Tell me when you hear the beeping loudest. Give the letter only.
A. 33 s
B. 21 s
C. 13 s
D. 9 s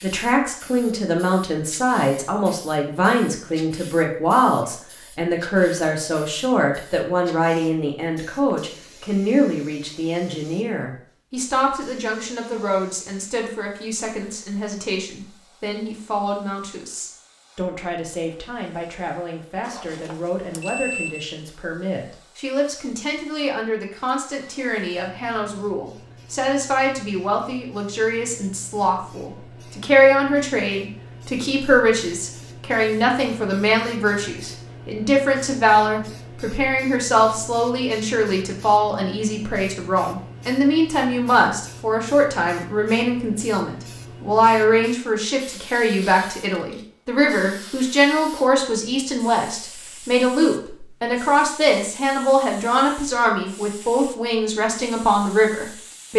B.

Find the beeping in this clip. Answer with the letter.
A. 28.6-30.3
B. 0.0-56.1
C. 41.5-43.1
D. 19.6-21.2
D.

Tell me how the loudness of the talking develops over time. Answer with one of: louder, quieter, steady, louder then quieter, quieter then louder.
quieter then louder.